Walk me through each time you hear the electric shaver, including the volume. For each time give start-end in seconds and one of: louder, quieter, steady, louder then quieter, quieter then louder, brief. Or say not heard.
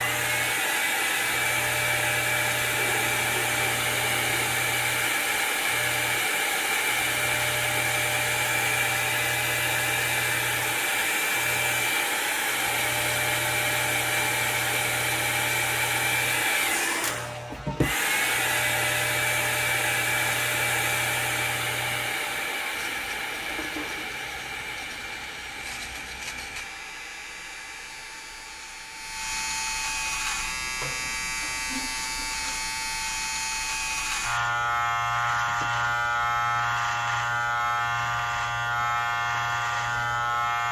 0.0-40.6 louder.